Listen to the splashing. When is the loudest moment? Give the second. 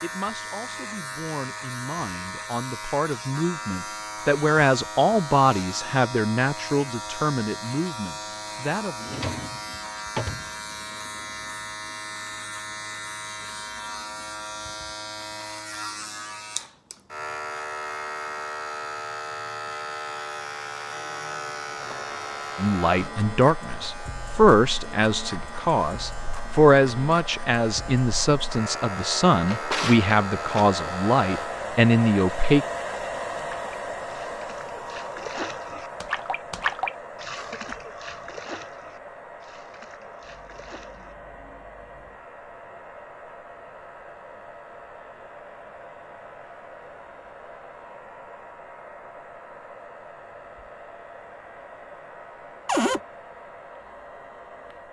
37 s.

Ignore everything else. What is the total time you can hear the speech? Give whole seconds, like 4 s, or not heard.
19 s.